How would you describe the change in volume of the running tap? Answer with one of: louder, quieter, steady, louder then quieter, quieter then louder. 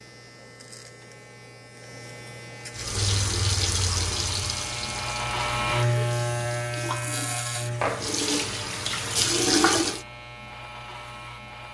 quieter then louder.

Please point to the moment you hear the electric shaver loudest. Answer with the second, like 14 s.
6 s.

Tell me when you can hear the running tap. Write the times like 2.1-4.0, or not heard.
2.8-10.1.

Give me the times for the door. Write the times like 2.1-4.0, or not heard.
not heard.